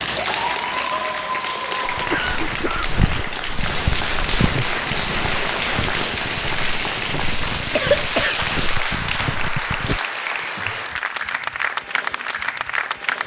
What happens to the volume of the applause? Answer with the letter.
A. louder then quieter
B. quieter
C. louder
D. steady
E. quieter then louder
D.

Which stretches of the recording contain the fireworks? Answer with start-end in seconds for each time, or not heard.
3.5-8.9.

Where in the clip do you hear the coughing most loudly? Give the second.
8 s.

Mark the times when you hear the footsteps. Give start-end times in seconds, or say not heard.
1.9-10.0.